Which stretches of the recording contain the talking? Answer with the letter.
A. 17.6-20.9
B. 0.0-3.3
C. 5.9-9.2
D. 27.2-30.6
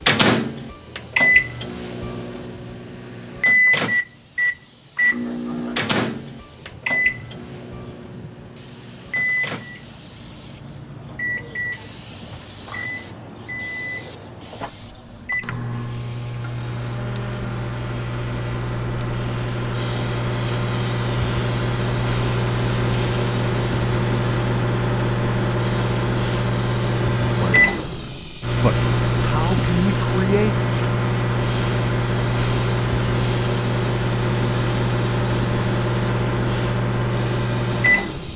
D.